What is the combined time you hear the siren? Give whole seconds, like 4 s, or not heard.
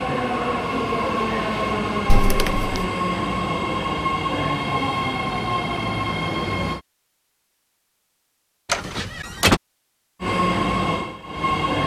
not heard.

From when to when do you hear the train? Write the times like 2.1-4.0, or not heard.
0.0-6.8, 10.2-11.8.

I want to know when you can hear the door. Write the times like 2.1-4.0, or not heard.
2.0-2.9, 8.7-9.6.